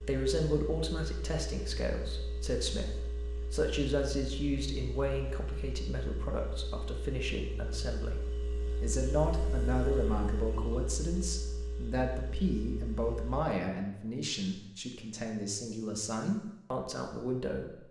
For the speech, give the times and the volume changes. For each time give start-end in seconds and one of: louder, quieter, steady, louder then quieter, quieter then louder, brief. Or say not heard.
0.0-17.8 steady.